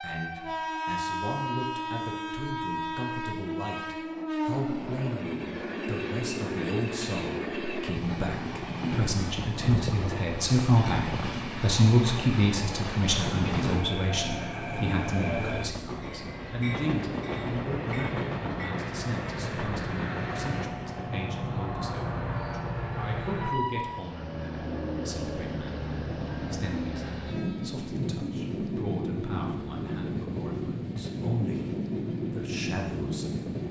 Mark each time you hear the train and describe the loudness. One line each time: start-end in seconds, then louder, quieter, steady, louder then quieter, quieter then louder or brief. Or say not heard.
0.0-33.6 steady.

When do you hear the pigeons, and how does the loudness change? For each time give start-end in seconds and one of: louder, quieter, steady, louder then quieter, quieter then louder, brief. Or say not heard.
not heard.